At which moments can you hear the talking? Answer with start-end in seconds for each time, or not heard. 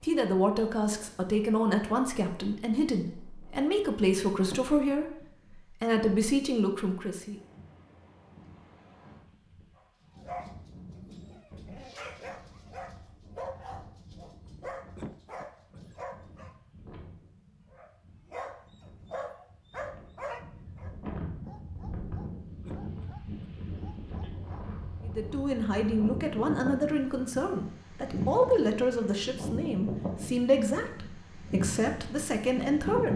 0.0-7.3, 25.1-33.1.